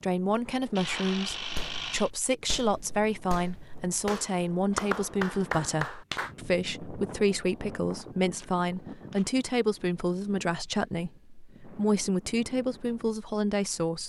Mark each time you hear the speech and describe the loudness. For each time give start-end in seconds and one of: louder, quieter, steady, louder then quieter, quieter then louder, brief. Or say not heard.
0.0-14.0 steady.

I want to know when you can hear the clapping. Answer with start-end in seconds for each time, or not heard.
0.8-6.3.